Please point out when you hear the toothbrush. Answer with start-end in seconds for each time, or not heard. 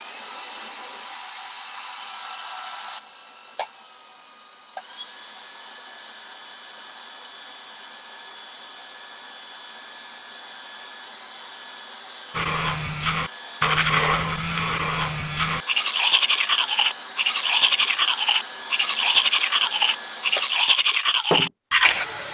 12.3-22.1.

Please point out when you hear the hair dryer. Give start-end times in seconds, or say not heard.
0.0-22.2.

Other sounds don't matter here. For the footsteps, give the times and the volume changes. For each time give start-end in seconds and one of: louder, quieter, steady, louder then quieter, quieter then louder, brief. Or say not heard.
not heard.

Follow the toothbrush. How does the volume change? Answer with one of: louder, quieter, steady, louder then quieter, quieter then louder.
steady.